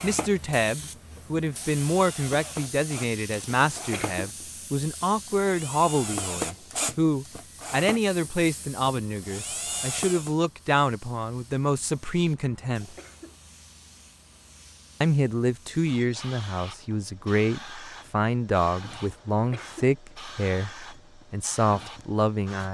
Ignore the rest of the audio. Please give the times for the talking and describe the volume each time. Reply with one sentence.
You can hear the talking from 0.0 to 12.9 s, at a steady volume; and from 15.0 to 22.6 s, at a steady volume.